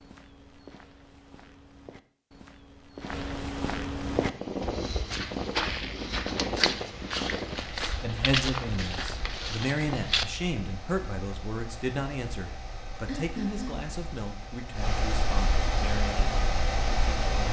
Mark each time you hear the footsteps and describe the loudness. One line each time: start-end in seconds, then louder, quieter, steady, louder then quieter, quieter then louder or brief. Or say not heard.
0.0-10.2 louder.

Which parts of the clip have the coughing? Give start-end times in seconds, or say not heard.
13.1-13.9.